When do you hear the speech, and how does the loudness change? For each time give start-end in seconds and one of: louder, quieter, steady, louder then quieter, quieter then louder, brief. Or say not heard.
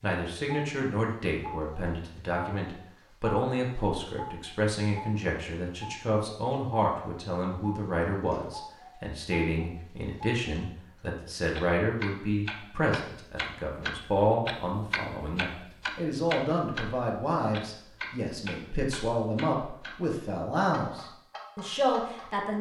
0.0-22.5 steady.